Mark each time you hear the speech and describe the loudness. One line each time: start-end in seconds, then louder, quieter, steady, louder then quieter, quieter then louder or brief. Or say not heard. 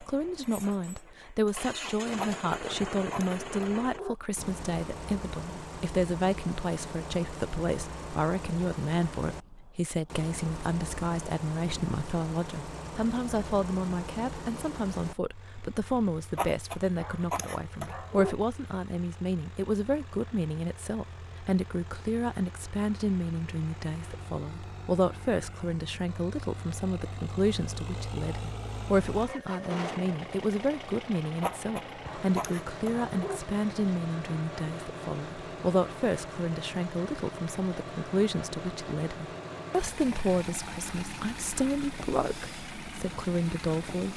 0.0-44.1 steady.